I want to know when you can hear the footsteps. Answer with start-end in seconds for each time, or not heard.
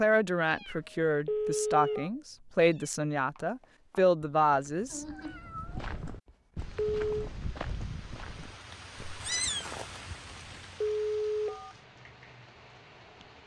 3.4-10.5.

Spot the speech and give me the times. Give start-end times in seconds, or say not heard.
0.0-5.0.